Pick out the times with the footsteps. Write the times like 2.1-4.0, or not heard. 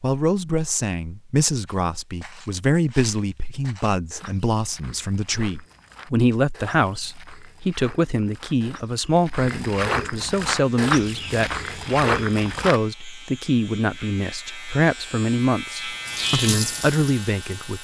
1.6-12.8.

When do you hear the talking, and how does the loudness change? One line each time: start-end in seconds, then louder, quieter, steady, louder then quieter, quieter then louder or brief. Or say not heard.
0.0-17.7 steady.